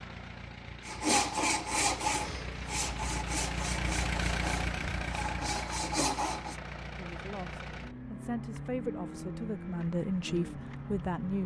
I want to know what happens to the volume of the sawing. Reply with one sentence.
The volume of the sawing goes down, then up.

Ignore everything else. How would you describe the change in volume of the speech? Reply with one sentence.
The loudness of the speech goes up.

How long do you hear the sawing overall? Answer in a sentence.
You can hear the sawing for 6 seconds altogether.